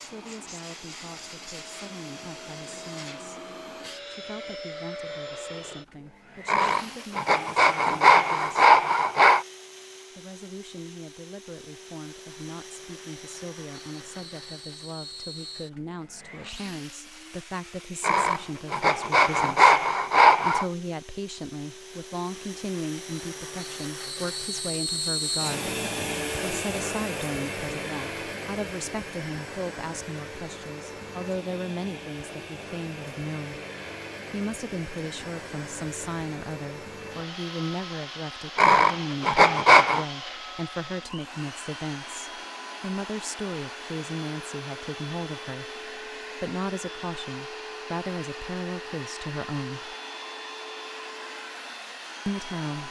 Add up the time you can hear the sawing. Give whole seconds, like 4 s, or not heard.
7 s.